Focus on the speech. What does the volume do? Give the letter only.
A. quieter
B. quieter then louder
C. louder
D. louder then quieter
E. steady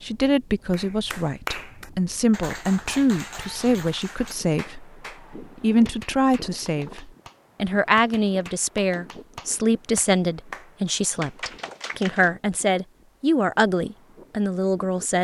E.